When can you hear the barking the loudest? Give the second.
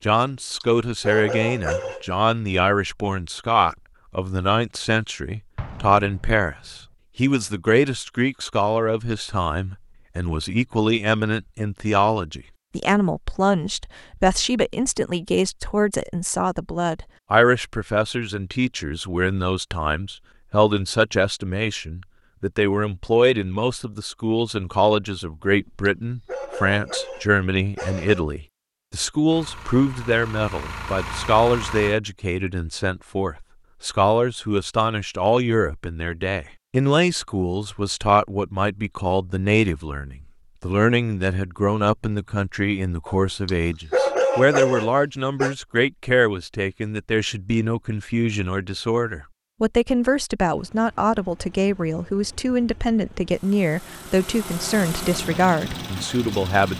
44 s.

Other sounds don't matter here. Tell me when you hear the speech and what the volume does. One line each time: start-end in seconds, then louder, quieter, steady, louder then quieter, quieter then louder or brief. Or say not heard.
0.0-56.7 steady.